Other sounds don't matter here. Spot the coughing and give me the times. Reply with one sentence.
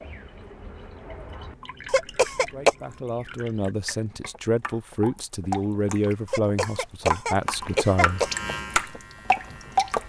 The coughing can be heard from 1.9 to 2.8 s and from 6.2 to 8.3 s.